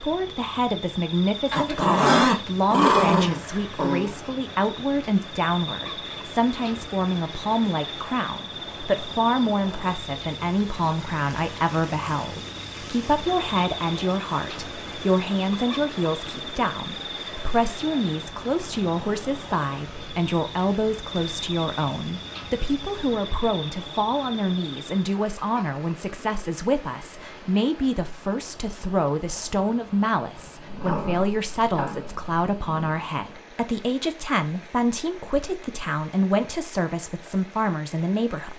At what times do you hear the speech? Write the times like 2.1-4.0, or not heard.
0.0-38.5.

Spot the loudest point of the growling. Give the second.
2 s.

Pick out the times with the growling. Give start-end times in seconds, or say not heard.
1.5-4.1, 30.6-33.0.